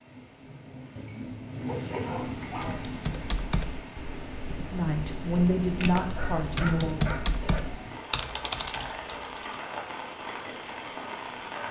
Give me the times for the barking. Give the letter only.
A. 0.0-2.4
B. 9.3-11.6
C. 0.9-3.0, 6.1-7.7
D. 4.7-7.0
C.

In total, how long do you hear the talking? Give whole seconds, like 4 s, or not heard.
2 s.